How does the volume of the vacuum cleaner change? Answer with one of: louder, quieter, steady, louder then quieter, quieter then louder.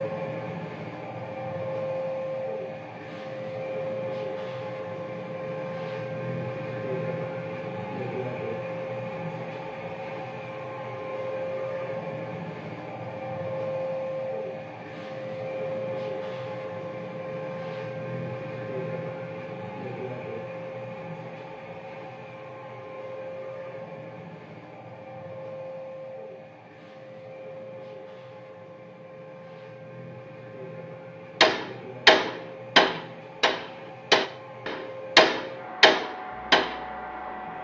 quieter.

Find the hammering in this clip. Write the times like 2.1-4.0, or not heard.
31.4-36.8.